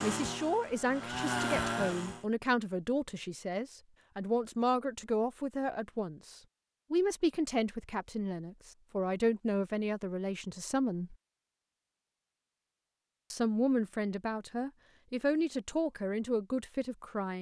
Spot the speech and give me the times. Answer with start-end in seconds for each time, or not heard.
0.0-11.2, 13.3-17.3.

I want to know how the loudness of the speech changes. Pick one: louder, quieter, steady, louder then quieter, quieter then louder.
steady.